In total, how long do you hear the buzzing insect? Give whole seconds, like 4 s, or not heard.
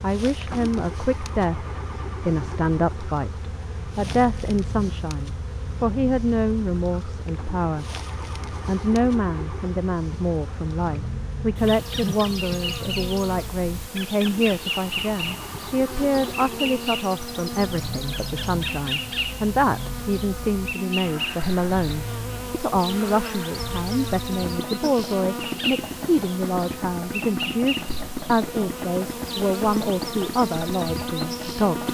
32 s.